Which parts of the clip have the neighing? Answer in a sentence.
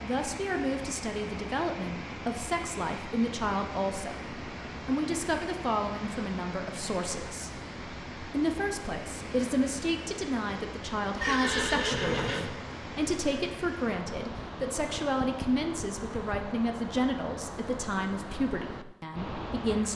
You can hear the neighing from 11.2 to 12.5 s.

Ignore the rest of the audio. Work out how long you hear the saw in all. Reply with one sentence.
You can't hear the saw here.